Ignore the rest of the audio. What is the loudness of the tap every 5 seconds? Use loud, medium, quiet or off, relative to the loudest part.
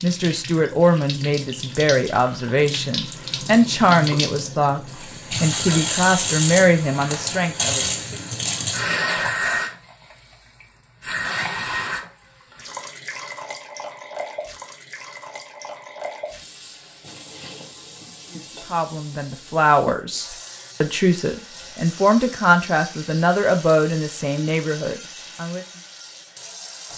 medium, loud, medium, quiet, quiet, quiet.